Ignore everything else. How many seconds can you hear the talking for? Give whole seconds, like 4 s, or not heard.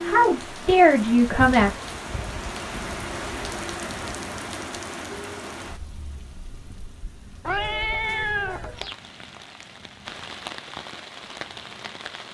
2 s.